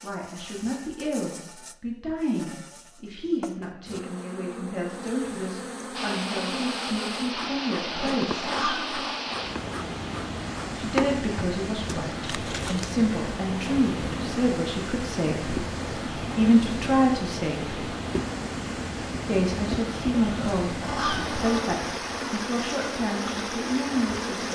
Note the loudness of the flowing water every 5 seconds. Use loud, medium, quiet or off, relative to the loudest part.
off, loud, loud, loud, loud.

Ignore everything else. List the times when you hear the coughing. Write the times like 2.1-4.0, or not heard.
not heard.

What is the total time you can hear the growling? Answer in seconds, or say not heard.
3 s.